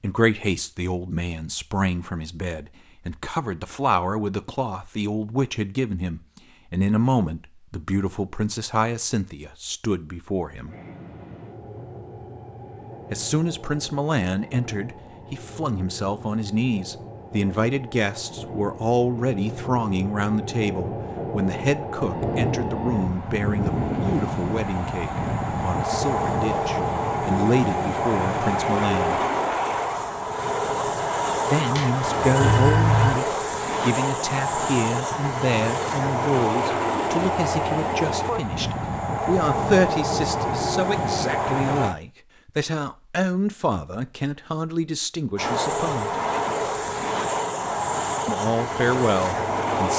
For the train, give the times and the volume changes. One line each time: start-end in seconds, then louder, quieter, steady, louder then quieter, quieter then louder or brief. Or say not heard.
10.7-42.0 louder
45.4-49.9 steady.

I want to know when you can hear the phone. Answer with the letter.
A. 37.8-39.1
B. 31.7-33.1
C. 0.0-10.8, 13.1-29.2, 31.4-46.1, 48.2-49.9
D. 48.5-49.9
B.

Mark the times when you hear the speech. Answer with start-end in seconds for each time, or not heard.
0.0-10.8, 13.1-29.2, 31.4-46.1, 48.2-49.9.